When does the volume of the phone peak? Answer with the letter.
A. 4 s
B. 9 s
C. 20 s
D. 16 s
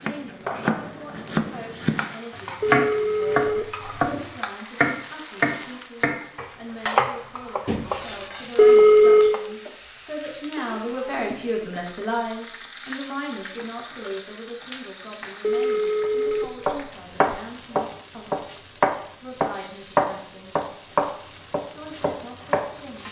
B.